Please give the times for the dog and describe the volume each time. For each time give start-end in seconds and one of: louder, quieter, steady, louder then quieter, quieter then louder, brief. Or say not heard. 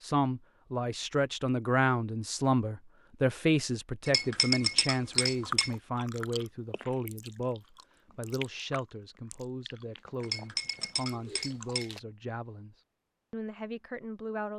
not heard.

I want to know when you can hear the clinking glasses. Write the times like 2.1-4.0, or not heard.
4.0-5.7, 10.2-11.9.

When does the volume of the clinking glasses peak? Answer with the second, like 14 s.
5 s.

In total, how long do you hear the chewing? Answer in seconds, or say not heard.
7 s.